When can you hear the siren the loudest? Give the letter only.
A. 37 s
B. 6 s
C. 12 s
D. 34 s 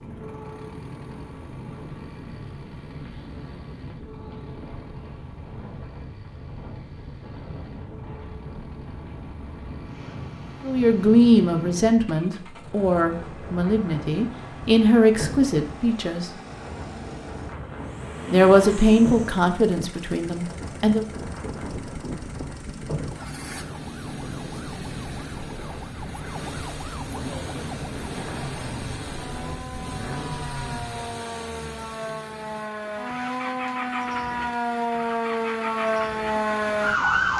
A.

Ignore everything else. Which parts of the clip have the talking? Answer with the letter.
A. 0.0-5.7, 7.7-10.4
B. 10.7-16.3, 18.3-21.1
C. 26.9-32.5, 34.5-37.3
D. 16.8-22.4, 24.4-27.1
B.